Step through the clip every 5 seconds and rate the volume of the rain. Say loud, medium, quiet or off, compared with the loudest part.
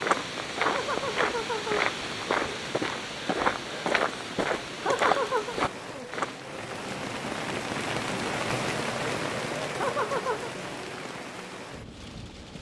medium, loud, medium.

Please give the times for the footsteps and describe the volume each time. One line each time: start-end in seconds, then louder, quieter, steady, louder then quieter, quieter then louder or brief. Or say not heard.
0.0-6.5 steady.